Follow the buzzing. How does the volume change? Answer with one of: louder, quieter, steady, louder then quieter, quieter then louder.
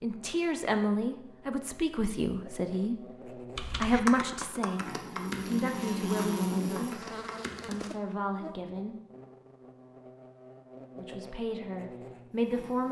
louder then quieter.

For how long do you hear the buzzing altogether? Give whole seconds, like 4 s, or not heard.
13 s.